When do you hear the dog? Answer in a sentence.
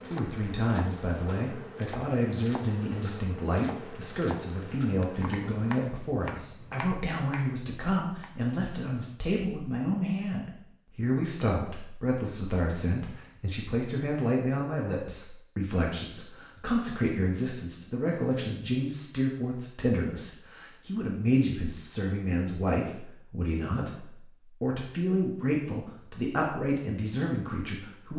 You can't hear the dog here.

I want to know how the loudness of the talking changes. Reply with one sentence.
The loudness of the talking stays about the same.